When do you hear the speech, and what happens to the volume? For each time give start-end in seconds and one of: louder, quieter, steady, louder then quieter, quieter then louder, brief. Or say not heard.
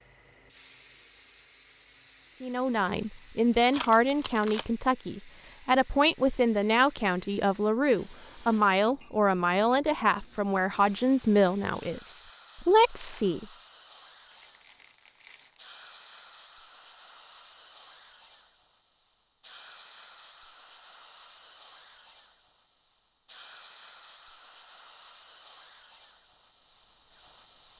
2.4-13.4 steady.